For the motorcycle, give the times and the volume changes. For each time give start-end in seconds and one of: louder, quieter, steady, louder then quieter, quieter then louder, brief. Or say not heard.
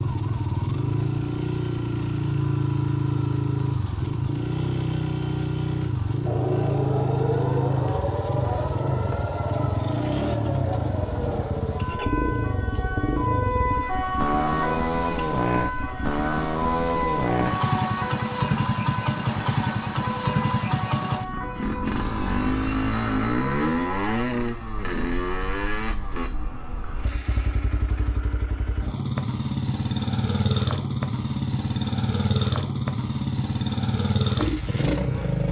0.0-35.4 steady.